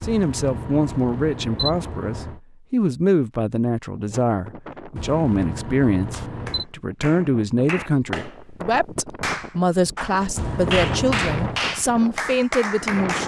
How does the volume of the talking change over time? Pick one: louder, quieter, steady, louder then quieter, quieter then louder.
steady.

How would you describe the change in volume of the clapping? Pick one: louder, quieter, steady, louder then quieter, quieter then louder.
louder.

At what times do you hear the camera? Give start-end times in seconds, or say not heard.
0.0-2.4, 5.0-6.7, 10.3-11.7.